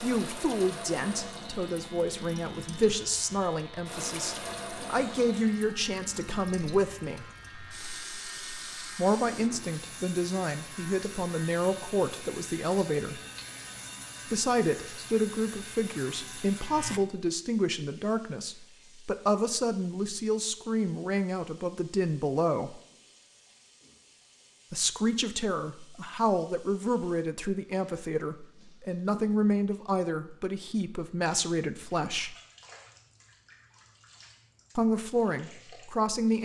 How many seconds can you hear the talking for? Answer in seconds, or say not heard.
29 s.